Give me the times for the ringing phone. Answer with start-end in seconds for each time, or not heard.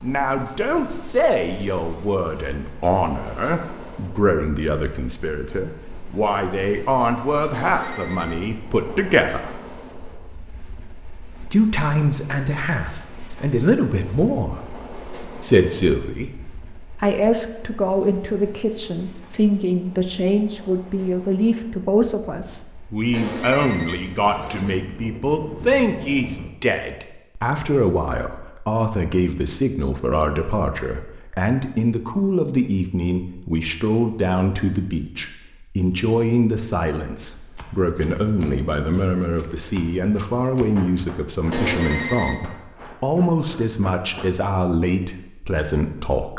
7.5-8.4, 23.1-24.9, 41.5-42.5.